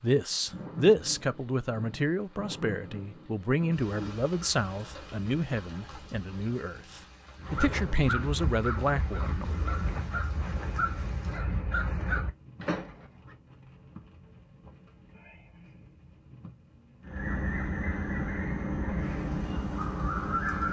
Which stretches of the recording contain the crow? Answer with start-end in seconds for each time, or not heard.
7.3-13.3, 17.1-20.6.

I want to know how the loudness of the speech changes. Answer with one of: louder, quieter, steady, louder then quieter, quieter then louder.
quieter then louder.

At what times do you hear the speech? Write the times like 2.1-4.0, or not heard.
0.0-9.6.